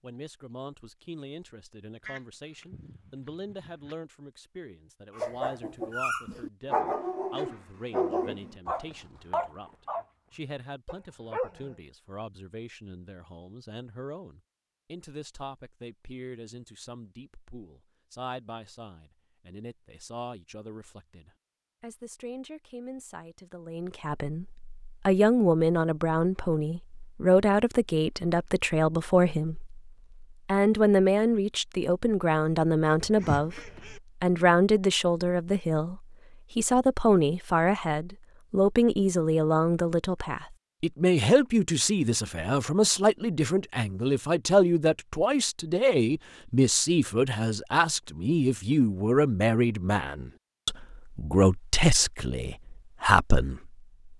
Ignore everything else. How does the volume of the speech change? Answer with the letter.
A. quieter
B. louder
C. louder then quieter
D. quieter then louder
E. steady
B.